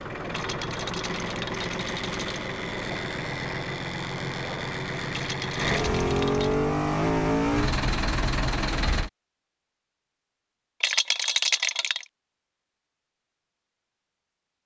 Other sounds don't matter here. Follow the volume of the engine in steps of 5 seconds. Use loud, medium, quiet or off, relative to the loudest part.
medium, loud, off.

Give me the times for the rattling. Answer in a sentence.
You can hear the rattling from 0.3 to 2.4 s, from 5.1 to 6.5 s and from 10.8 to 12.1 s.